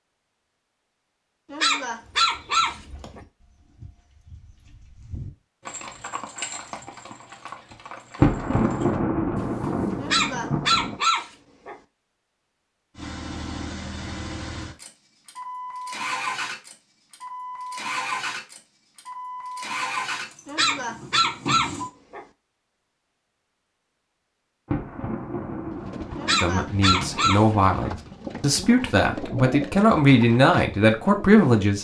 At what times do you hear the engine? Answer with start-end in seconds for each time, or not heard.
12.9-21.9.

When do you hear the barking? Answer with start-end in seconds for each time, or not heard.
1.5-3.2, 10.0-11.8, 20.4-22.2, 26.1-27.9.